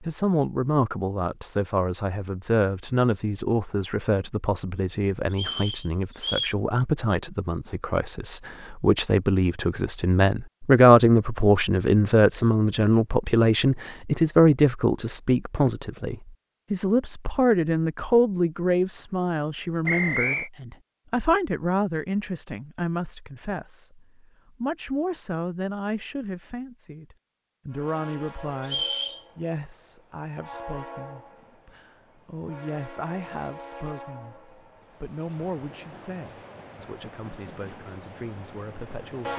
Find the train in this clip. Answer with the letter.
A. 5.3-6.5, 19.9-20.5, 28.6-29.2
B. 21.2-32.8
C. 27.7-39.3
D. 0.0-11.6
C.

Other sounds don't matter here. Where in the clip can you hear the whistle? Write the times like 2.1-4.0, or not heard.
5.3-6.5, 19.9-20.5, 28.6-29.2.